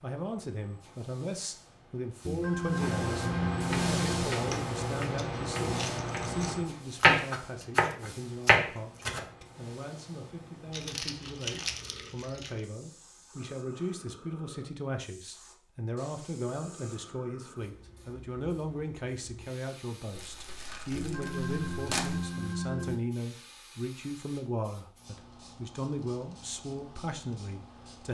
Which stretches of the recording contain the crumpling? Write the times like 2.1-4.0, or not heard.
4.5-6.5, 10.7-12.6, 20.1-22.2.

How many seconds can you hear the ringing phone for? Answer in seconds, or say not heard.
4 s.